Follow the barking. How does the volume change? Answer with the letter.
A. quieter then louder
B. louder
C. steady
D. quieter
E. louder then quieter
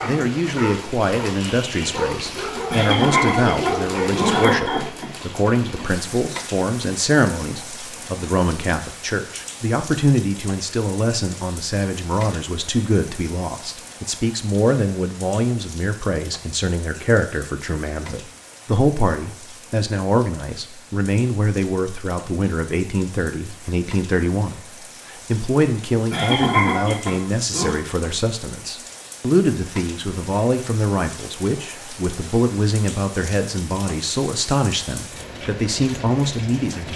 B.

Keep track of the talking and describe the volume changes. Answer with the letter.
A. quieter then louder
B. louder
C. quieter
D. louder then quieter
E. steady
E.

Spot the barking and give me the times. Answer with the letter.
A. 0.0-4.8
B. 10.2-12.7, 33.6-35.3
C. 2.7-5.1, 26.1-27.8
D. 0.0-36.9
A.